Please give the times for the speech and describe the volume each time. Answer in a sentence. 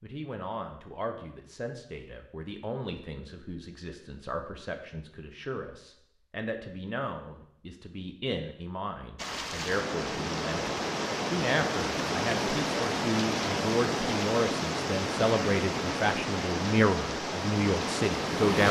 You can hear the speech from 0.0 to 18.6 s, getting louder.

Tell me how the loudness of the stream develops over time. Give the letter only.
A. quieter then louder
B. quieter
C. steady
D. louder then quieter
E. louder
C.